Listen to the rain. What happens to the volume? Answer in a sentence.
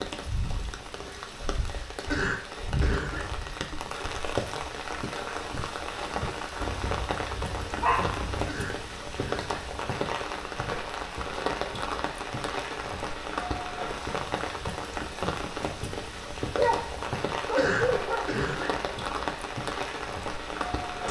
The volume of the rain stays about the same.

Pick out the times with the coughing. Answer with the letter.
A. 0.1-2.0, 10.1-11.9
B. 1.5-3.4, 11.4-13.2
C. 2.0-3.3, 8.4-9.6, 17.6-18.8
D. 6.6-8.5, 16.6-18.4
C.